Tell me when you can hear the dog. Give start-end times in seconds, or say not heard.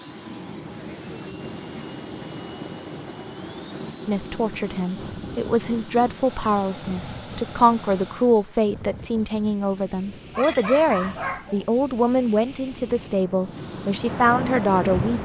10.3-11.7.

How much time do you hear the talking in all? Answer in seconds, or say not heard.
11 s.